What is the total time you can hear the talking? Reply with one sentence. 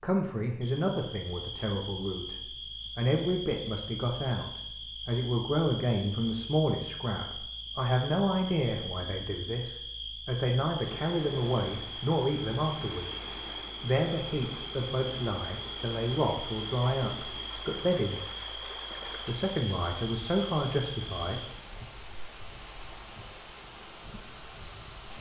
You can hear the talking for 19 seconds altogether.